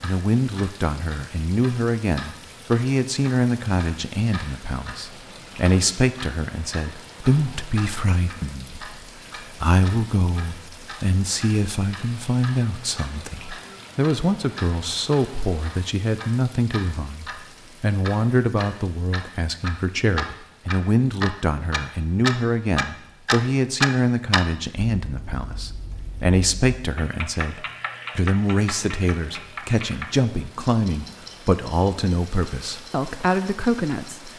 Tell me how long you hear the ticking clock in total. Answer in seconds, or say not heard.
34 s.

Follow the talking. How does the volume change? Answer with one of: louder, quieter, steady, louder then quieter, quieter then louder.
steady.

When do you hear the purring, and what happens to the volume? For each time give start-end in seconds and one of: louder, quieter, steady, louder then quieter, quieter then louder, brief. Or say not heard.
not heard.